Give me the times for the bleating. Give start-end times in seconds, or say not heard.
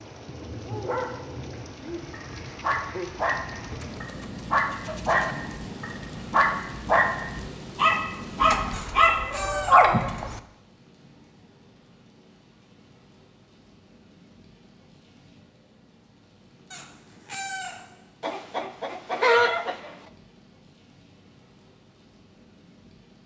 not heard.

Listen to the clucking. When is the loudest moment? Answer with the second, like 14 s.
19 s.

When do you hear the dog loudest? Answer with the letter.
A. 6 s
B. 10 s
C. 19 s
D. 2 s
B.